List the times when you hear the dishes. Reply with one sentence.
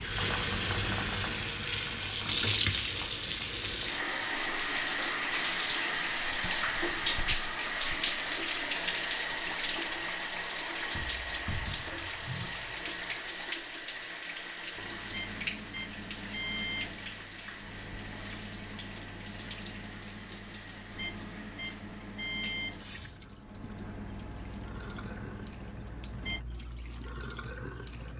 You can't hear the dishes here.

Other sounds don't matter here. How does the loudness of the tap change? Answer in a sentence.
The volume of the tap goes down.